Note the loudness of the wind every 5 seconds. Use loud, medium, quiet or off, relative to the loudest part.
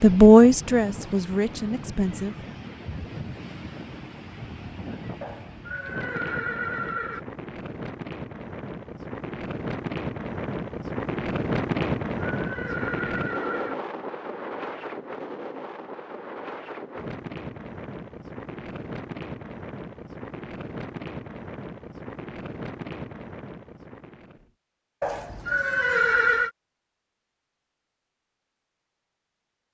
medium, medium, loud, medium, medium, off.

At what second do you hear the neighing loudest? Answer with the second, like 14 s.
26 s.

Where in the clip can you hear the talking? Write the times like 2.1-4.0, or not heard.
0.0-2.7.